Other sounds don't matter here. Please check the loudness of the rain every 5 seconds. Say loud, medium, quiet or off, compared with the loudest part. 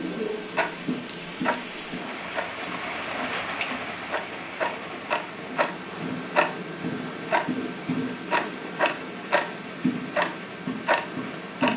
loud, medium, medium.